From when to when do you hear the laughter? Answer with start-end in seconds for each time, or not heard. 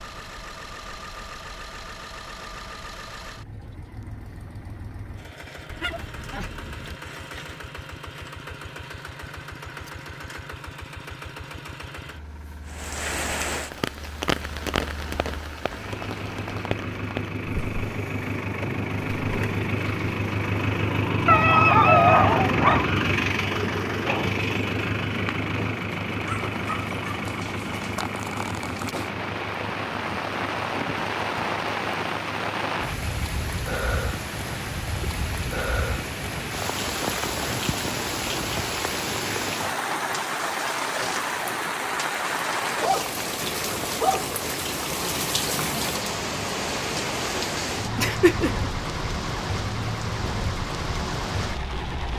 48.0-48.7.